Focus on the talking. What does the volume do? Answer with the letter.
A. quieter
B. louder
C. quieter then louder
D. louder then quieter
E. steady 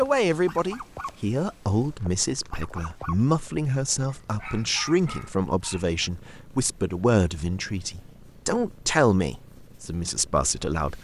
E.